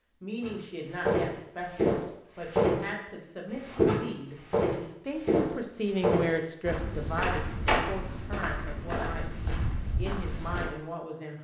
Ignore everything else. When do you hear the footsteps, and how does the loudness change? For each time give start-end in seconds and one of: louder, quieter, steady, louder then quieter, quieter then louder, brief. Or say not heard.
0.4-10.7 quieter.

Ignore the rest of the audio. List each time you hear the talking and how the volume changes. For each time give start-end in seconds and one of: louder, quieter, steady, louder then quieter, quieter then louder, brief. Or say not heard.
0.2-11.3 louder then quieter.